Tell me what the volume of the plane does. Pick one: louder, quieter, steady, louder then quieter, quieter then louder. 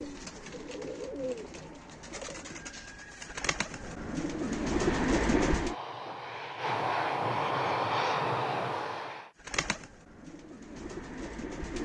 louder.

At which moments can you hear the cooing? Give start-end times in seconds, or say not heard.
0.0-5.8, 9.4-11.8.